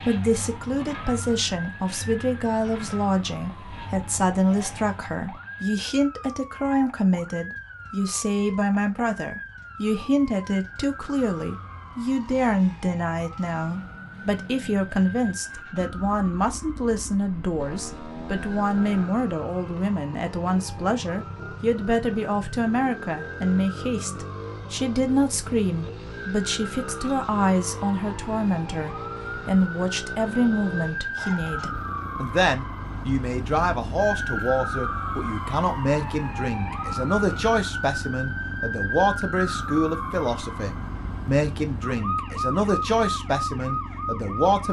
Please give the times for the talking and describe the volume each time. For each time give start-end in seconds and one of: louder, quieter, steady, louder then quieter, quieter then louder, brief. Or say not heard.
0.1-44.6 steady.